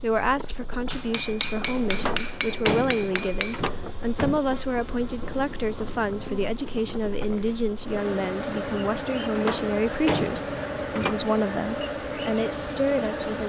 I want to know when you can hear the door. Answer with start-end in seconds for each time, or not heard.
1.9-4.4, 9.3-11.2.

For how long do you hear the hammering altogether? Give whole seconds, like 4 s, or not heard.
3 s.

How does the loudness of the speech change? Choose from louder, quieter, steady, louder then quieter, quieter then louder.
steady.